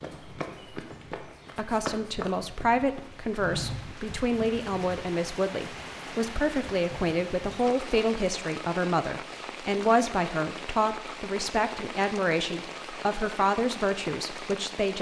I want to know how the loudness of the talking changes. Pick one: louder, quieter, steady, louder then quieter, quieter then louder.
steady.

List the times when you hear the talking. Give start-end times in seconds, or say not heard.
1.6-14.9.